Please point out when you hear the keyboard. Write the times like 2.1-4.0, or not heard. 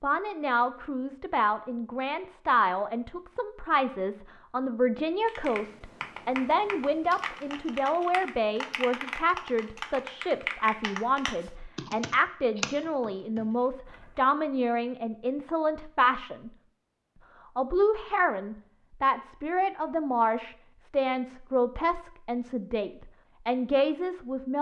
5.2-14.3.